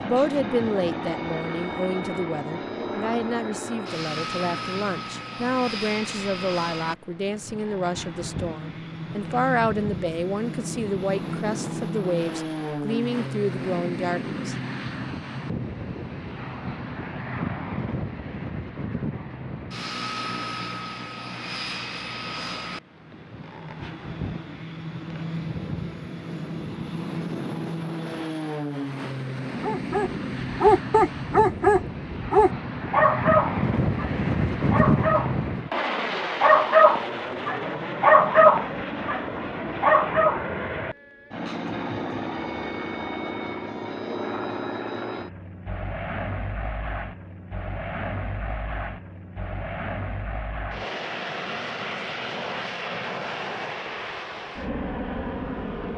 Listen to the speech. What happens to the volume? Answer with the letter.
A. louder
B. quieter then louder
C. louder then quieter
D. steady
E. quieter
D.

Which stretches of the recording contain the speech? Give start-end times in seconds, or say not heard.
0.0-14.6.